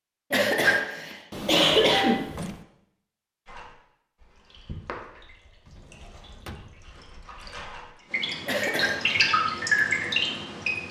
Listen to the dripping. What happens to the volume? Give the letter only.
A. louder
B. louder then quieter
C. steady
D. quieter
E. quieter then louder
E.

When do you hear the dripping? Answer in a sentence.
The dripping can be heard from 3.5 to 10.8 s.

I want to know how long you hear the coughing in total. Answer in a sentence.
You can hear the coughing for 3 seconds altogether.